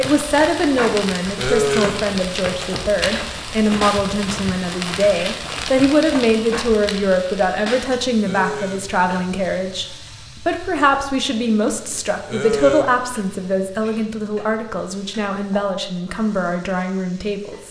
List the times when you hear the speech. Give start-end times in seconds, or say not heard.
0.0-17.6.